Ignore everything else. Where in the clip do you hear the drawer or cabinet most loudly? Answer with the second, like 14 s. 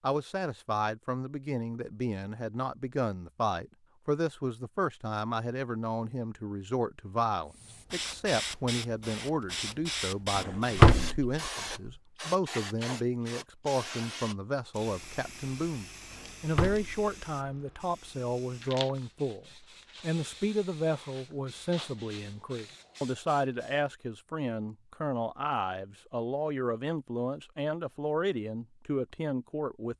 11 s.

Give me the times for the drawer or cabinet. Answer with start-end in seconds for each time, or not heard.
10.3-11.3, 16.1-16.9.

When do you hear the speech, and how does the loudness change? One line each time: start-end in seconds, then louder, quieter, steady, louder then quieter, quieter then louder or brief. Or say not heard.
0.0-29.9 steady.